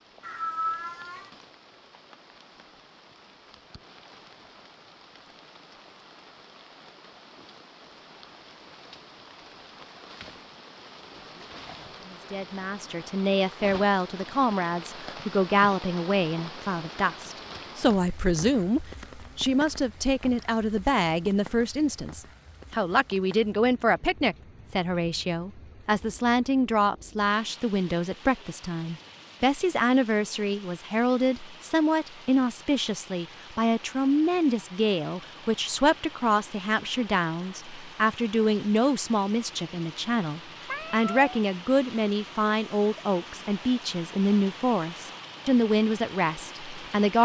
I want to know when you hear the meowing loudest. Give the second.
1 s.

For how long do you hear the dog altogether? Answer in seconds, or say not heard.
not heard.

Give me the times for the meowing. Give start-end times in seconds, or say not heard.
0.2-1.3, 40.6-41.3.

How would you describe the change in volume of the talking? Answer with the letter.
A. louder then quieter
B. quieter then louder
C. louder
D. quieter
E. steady
E.